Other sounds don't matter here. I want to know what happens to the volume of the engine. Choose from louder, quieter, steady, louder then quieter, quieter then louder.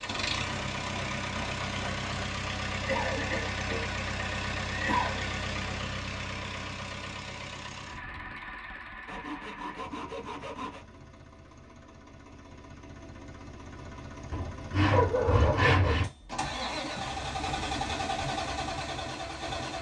quieter then louder.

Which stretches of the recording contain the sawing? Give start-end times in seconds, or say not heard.
0.1-2.2, 9.1-10.8, 14.3-16.1.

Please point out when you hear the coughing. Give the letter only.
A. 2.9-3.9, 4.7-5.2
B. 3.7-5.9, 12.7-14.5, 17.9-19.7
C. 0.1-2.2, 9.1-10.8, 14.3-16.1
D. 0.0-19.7
A.